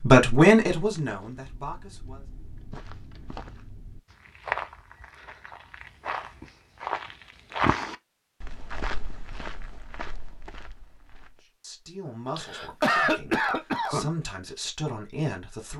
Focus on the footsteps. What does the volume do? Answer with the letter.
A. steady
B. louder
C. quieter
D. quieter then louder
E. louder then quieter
E.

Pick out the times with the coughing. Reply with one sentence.
You can hear the coughing from 12.3 to 14.1 s.